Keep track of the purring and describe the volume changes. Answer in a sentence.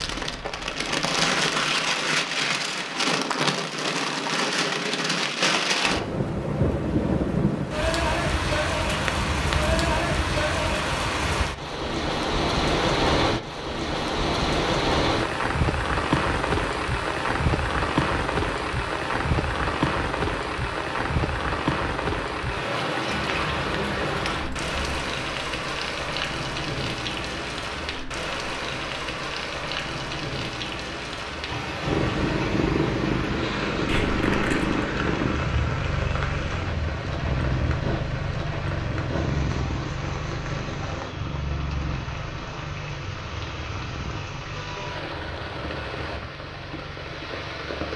The volume of the purring goes down.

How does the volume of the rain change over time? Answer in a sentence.
The volume of the rain goes down.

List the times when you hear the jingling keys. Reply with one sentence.
You can hear the jingling keys from 8.8 to 9.9 s, from 23.1 to 25.1 s and from 33.9 to 34.8 s.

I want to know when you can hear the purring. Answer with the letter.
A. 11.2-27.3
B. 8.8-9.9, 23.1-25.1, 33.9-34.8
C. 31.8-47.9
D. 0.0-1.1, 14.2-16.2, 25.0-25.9
C.